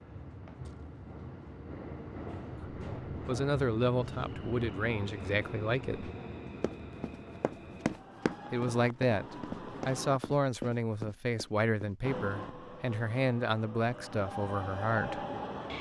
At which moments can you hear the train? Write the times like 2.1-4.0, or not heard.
0.0-10.2, 12.0-15.7.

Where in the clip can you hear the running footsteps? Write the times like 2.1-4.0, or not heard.
6.6-11.9.